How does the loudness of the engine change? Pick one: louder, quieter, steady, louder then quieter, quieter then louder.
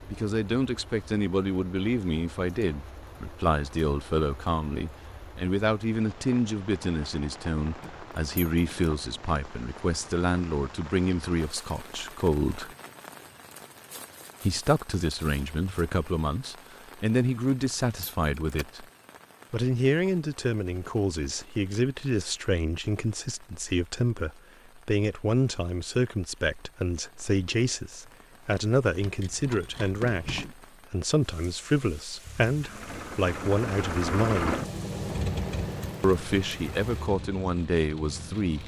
louder then quieter.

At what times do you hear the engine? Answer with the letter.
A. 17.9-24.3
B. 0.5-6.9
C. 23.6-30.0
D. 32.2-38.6
D.